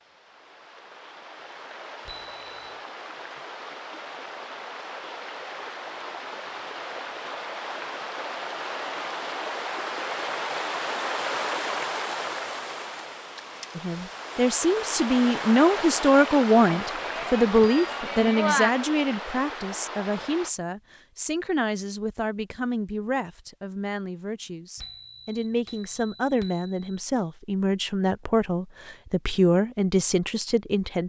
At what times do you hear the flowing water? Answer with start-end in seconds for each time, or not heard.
0.0-20.5.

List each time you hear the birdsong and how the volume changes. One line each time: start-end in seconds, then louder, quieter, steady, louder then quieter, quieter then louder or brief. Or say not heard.
not heard.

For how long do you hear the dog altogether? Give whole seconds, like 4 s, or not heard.
not heard.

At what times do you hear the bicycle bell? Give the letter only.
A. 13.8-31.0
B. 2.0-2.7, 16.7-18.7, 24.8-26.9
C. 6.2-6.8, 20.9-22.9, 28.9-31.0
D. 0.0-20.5
B.